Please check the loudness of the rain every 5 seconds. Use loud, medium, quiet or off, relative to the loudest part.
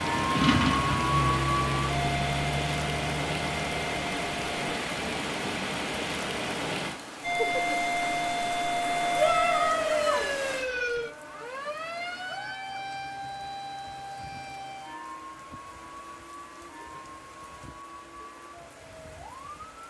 loud, loud, medium, quiet.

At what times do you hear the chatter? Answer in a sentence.
You can't hear the chatter here.